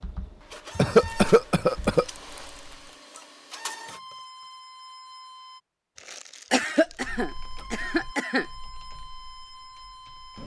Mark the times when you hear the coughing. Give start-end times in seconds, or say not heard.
0.8-2.0, 6.5-8.4.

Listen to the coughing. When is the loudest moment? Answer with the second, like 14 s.
1 s.